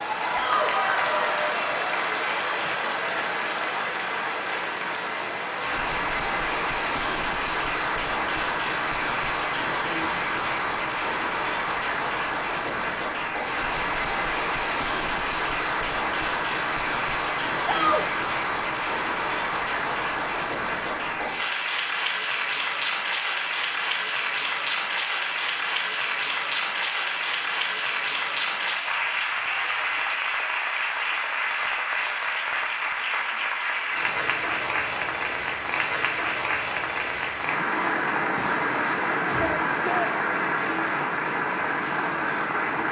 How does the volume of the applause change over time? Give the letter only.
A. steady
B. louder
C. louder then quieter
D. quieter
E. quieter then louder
A.